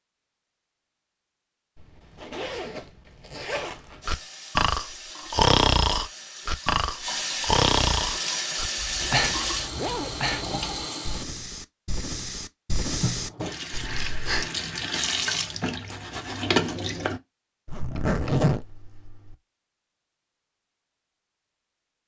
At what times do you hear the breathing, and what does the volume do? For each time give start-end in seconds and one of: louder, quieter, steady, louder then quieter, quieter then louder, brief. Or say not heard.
4.0-14.5 quieter.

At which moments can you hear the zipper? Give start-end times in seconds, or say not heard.
1.8-4.0, 8.9-10.2, 17.6-19.4.